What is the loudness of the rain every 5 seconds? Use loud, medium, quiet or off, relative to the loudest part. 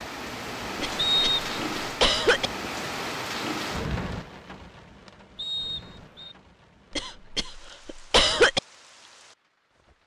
loud, quiet.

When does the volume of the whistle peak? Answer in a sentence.
The loudest moment of the whistle is at 1 second.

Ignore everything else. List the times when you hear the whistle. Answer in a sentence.
The whistle can be heard from 0.9 to 1.4 s and from 5.3 to 6.3 s.